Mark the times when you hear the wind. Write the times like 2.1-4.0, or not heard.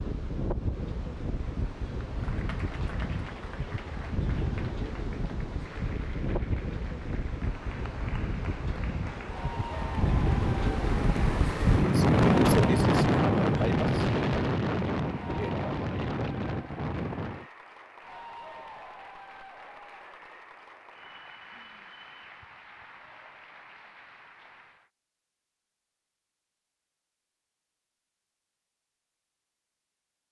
0.0-17.4.